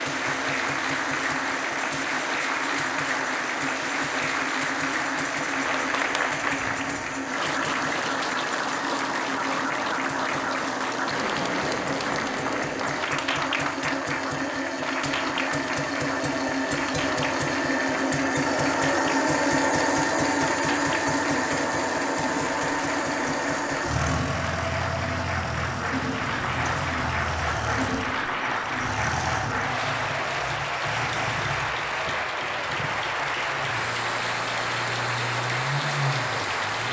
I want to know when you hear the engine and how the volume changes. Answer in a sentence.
You can hear the engine from 0.0 to 36.8 s, getting louder then quieter.